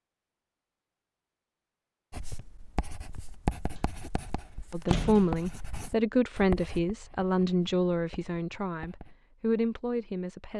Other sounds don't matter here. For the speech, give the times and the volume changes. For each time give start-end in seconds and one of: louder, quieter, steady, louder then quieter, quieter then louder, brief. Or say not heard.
4.7-10.5 quieter then louder.